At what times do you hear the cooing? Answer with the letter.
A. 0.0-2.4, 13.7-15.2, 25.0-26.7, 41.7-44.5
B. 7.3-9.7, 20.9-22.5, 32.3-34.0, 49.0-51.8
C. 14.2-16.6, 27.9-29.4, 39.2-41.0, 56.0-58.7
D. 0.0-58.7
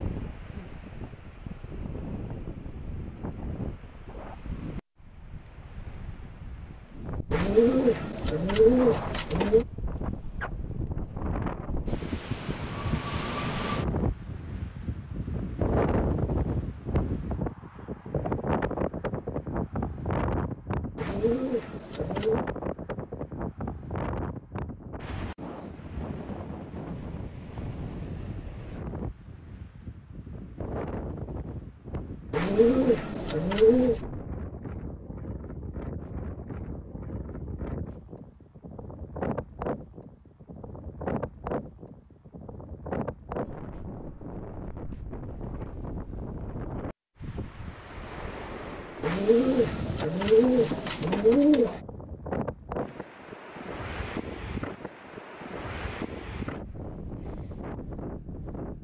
B.